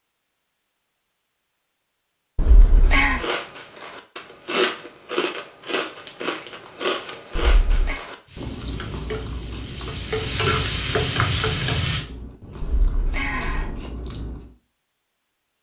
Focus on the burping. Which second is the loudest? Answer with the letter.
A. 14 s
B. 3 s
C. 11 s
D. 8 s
B.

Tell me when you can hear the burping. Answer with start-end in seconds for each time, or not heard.
2.4-3.2, 7.3-8.0, 12.6-13.8.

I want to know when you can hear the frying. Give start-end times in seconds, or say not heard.
8.2-12.1.